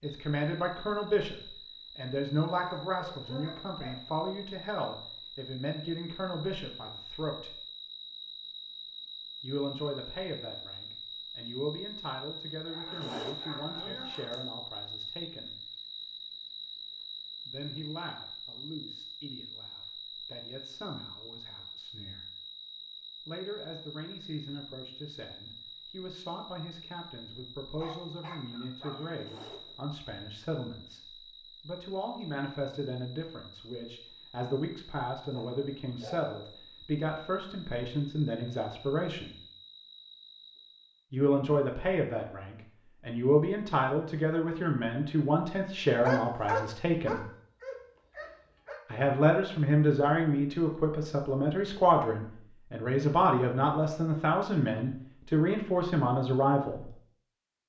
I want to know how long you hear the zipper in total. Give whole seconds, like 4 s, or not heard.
2 s.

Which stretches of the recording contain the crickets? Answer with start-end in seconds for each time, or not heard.
0.0-41.0.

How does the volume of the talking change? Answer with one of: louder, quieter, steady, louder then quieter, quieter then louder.
quieter then louder.